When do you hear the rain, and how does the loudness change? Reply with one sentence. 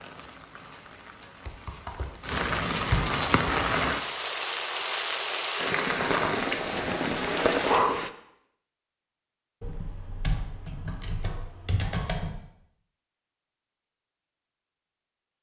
You can hear the rain from 0.0 to 8.1 s, getting louder.